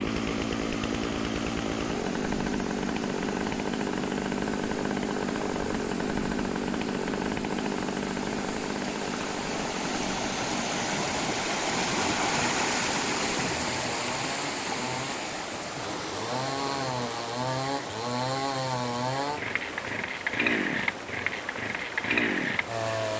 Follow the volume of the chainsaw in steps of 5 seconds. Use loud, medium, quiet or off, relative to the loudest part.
loud, loud, medium, loud, loud.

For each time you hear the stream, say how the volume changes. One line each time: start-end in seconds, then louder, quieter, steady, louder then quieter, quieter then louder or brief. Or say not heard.
0.0-23.1 louder then quieter.